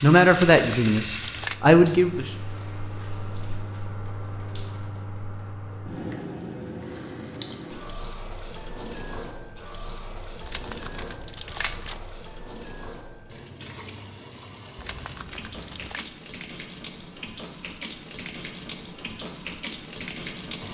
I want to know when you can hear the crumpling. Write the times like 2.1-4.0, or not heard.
0.3-1.6, 10.4-12.0, 14.8-16.1.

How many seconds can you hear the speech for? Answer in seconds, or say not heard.
2 s.